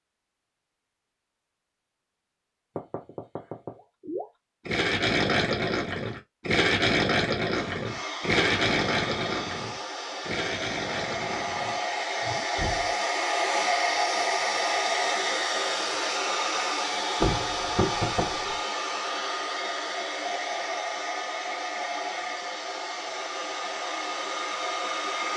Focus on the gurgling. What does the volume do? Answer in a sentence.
The volume of the gurgling goes down.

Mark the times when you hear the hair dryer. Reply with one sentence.
You can hear the hair dryer from 7.5 to 25.3 s.